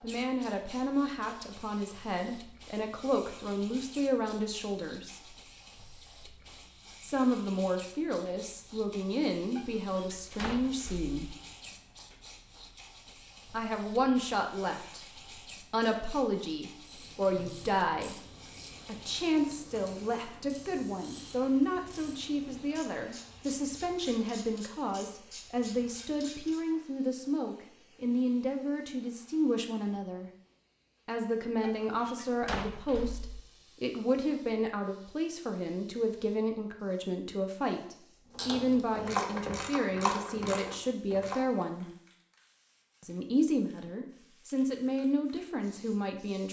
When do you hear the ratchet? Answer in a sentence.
The ratchet can be heard from 16.8 to 26.6 s and from 38.3 to 41.4 s.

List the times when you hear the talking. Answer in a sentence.
The talking can be heard from 0.0 to 5.3 s, from 7.0 to 11.3 s, from 13.5 to 18.2 s, from 18.9 to 30.3 s, from 31.1 to 41.9 s and from 43.0 to 46.4 s.